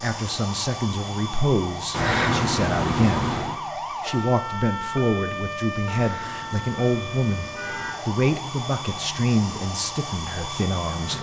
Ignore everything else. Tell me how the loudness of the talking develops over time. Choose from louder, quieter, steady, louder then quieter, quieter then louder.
steady.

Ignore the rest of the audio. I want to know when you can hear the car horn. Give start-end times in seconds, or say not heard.
1.9-3.6, 6.0-8.0.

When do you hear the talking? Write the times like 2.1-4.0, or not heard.
0.0-3.4, 4.0-11.1.